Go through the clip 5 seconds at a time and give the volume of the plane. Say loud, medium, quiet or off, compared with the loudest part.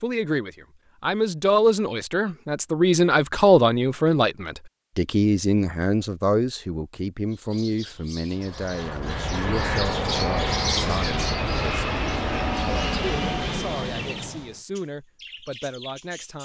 off, loud, loud, off.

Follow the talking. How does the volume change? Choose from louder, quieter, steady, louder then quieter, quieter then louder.
quieter.